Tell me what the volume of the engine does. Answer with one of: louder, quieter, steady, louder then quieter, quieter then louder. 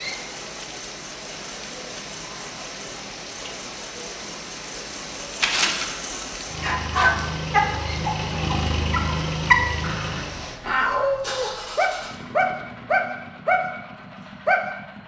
louder then quieter.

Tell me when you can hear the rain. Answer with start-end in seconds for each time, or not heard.
0.0-10.6.